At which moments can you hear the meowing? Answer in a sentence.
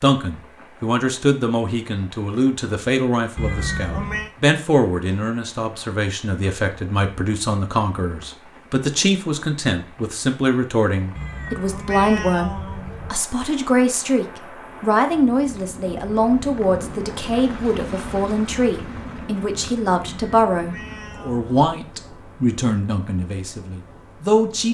You can hear the meowing from 3.4 to 4.3 s, from 11.2 to 13.2 s and from 20.2 to 21.6 s.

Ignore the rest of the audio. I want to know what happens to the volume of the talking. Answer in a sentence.
The loudness of the talking stays about the same.